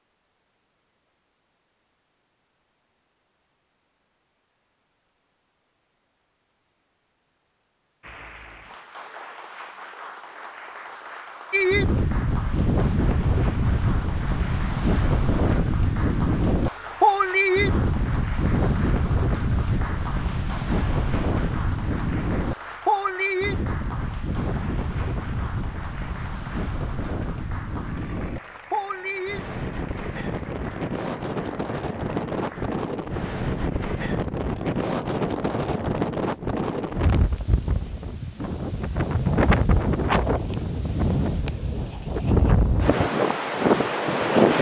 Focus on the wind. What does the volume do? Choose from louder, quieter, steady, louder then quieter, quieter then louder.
quieter then louder.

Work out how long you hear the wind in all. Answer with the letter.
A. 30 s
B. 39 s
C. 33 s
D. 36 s
C.